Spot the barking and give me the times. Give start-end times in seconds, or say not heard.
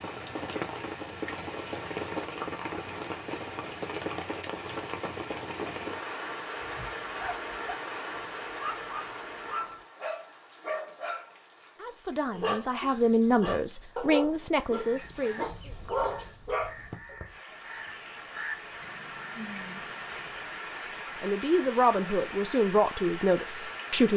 6.6-16.8.